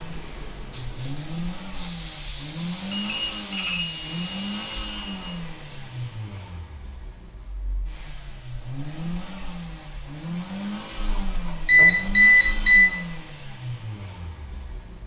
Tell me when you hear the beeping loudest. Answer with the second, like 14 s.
12 s.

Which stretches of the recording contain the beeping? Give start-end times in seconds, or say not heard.
2.9-5.2, 10.9-12.9.